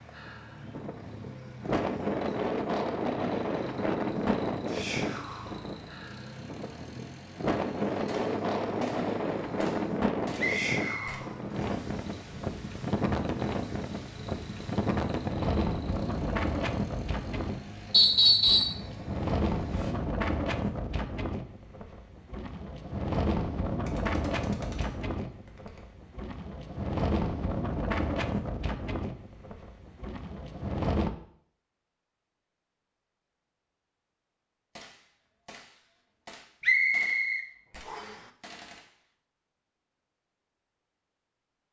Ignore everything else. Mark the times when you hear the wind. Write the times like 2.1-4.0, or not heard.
0.1-31.1.